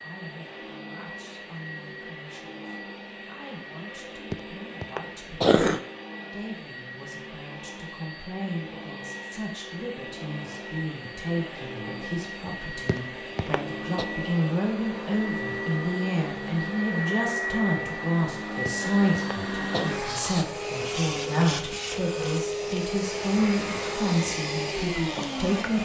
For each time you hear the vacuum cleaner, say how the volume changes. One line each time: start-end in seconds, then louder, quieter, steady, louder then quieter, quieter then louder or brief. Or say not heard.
0.0-25.8 louder.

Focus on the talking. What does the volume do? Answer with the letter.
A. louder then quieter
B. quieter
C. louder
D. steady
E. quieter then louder
C.